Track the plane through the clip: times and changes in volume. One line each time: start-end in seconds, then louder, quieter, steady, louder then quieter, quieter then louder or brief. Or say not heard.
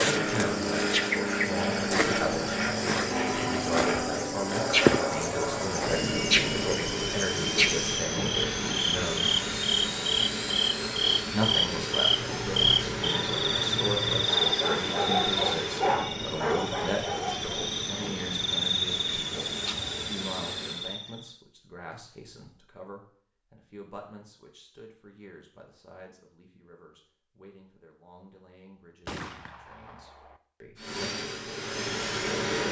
0.0-20.9 quieter
30.8-32.6 brief.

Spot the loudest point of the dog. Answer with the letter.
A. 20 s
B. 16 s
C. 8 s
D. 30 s
B.